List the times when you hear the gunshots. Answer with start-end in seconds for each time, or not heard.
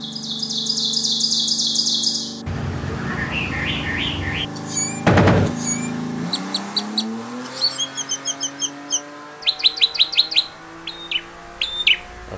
5.0-5.5.